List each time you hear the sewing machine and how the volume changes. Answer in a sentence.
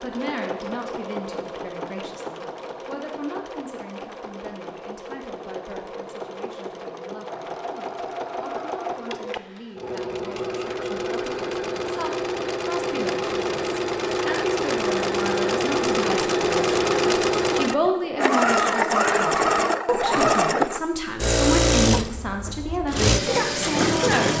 You can hear the sewing machine from 0.0 to 24.3 s, getting louder.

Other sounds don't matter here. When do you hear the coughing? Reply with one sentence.
The coughing can't be heard in this clip.